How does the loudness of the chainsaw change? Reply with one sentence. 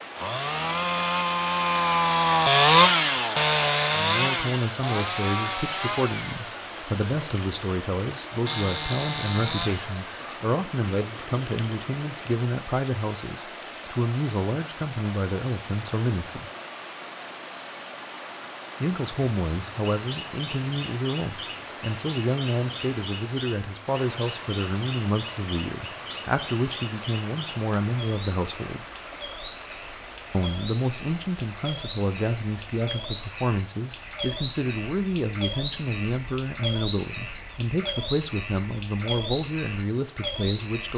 The volume of the chainsaw goes down.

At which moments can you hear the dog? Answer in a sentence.
You can't hear the dog here.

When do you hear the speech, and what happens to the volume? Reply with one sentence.
The speech can be heard from 3.9 to 16.5 s, at a steady volume; from 18.8 to 28.9 s, at a steady volume; and from 30.3 to 40.9 s, at a steady volume.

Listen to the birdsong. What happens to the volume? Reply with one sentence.
The loudness of the birdsong goes up.